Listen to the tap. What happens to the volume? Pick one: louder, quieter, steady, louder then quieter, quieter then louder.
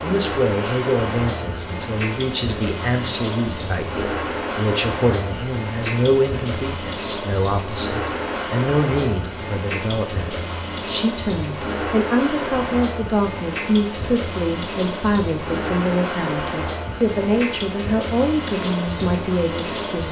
steady.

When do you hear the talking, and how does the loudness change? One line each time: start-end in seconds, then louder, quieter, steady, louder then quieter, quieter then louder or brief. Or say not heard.
0.0-20.0 steady.